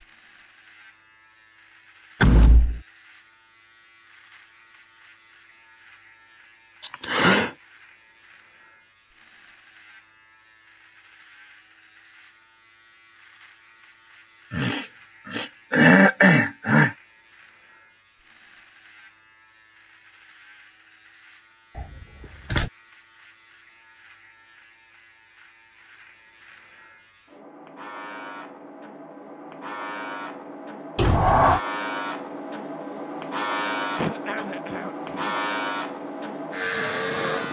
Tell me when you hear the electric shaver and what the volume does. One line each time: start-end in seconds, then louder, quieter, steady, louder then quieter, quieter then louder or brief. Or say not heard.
0.0-37.4 louder.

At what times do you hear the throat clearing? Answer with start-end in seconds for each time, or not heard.
6.8-7.5, 14.5-16.9, 34.0-35.4.